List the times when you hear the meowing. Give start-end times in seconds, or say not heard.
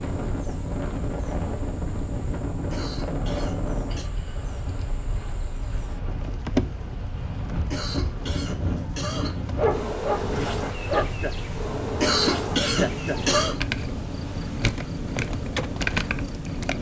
not heard.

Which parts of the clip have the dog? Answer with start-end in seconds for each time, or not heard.
9.6-11.2.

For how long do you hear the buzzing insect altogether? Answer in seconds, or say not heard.
17 s.